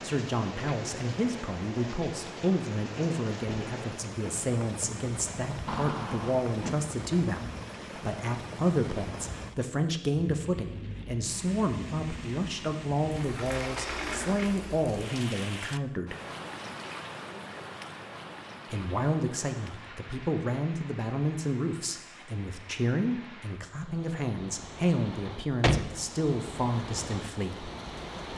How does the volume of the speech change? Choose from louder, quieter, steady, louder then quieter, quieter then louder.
steady.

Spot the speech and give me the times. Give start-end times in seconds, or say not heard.
0.0-16.1, 18.7-27.7.